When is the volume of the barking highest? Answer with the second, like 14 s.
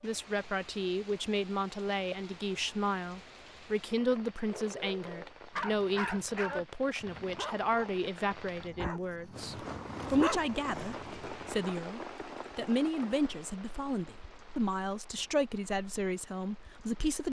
10 s.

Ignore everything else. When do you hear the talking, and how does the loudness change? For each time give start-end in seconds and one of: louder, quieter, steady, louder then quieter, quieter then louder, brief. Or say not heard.
0.0-17.2 steady.